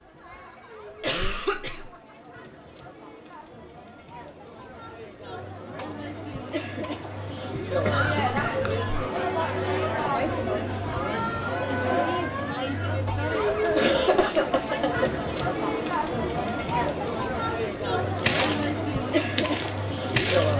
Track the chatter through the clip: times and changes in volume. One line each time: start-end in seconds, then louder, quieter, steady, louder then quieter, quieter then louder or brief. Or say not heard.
0.0-20.5 louder.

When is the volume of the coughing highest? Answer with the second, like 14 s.
14 s.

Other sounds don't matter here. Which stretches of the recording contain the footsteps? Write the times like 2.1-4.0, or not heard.
18.1-20.5.